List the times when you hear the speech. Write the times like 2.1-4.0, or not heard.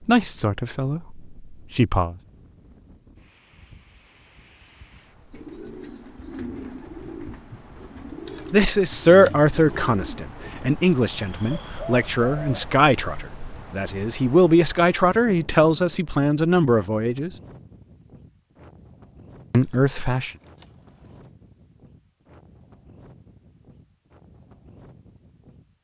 0.1-2.1, 8.5-17.3, 19.5-20.3.